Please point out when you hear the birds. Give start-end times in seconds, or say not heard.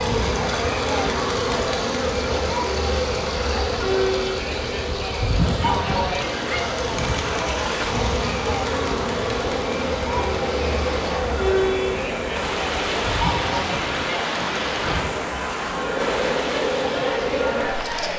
not heard.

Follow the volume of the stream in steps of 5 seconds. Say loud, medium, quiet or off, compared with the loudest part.
medium, medium, loud, loud.